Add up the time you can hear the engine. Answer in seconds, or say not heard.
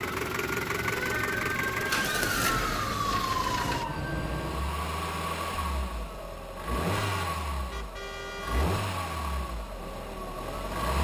11 s.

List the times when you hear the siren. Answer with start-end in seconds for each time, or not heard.
0.0-4.8.